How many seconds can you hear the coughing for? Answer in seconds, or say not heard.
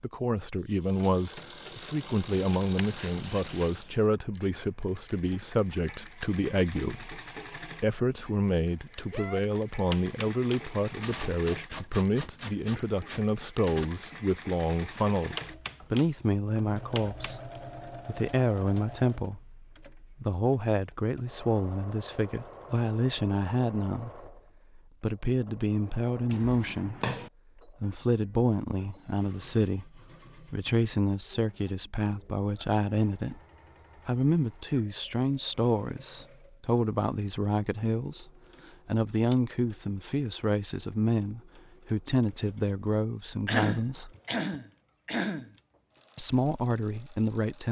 2 s.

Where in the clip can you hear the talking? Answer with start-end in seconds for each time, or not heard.
0.0-26.9, 27.6-33.4, 34.0-44.1, 46.1-47.6.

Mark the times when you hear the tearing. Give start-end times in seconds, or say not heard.
not heard.